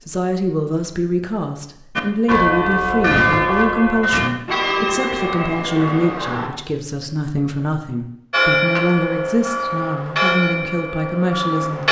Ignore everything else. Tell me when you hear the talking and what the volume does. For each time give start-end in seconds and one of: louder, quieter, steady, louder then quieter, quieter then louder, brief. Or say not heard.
0.1-11.8 steady.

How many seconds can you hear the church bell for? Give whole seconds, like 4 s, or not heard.
8 s.